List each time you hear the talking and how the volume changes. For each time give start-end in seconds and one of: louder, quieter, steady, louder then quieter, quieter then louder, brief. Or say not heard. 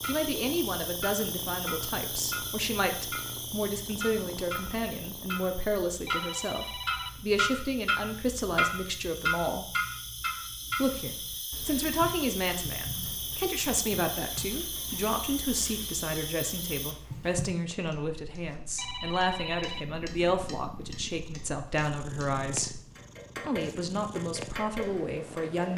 0.0-9.7 steady
10.8-22.7 steady
23.4-25.7 brief.